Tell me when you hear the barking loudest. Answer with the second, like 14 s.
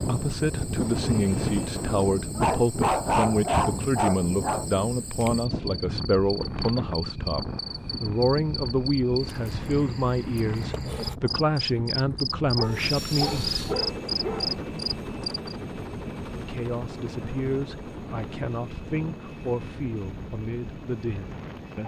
3 s.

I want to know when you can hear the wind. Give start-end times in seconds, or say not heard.
0.0-21.8.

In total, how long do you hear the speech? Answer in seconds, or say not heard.
19 s.